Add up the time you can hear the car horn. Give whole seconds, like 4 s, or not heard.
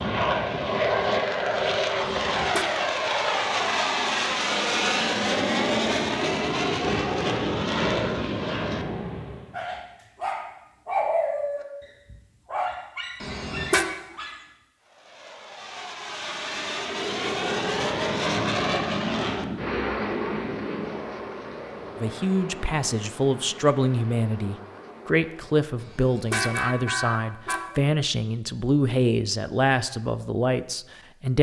3 s.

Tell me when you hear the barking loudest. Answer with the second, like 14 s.
11 s.